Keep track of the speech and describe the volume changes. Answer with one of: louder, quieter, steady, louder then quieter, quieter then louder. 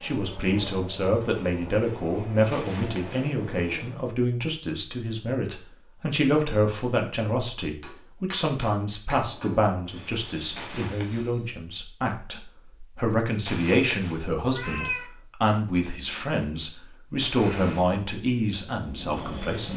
steady.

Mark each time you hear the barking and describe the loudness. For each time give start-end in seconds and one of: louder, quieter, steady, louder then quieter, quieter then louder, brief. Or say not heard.
not heard.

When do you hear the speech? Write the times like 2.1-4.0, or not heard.
0.0-19.7.